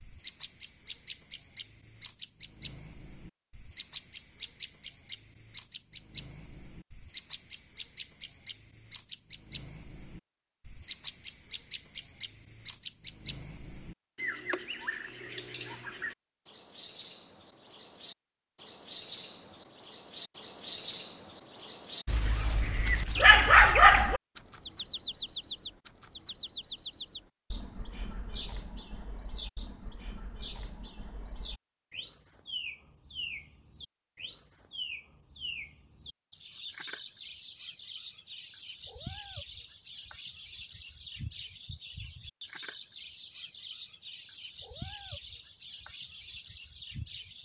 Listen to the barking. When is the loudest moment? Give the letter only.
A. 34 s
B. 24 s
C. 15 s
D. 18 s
B.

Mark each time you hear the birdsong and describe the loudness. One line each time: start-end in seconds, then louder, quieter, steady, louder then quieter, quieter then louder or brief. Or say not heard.
0.0-47.4 louder then quieter.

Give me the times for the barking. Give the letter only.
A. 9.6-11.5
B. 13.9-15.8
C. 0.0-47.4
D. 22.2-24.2
D.